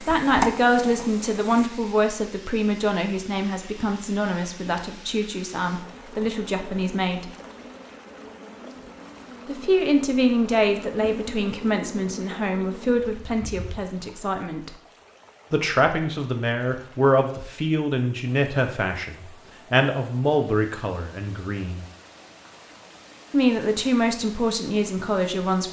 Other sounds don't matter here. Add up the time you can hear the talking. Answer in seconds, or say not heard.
21 s.